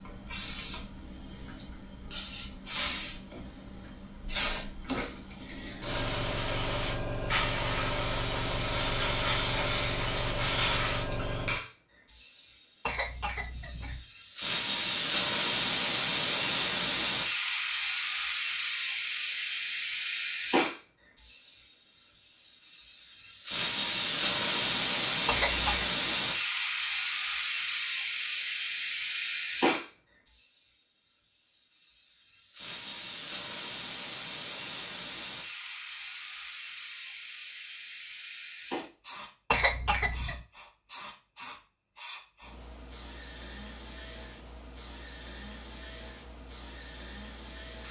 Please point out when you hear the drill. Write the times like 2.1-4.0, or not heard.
not heard.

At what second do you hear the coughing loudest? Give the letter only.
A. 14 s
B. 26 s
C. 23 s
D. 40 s
D.